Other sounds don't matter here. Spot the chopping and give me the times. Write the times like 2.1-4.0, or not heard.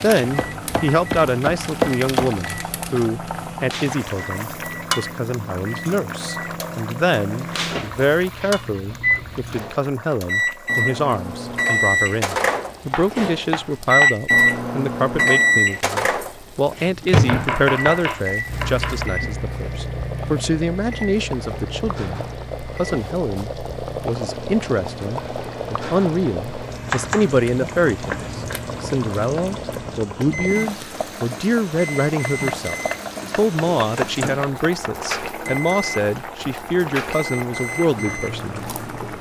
0.3-2.4, 12.5-14.1, 17.2-19.1, 26.9-28.3, 32.2-35.1.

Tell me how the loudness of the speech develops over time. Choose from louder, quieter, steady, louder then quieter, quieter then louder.
steady.